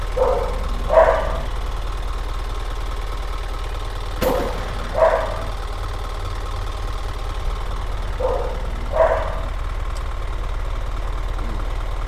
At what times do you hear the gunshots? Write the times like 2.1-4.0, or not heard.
4.2-5.0.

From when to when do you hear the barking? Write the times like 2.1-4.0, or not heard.
0.1-1.4, 4.2-5.5, 8.2-9.5.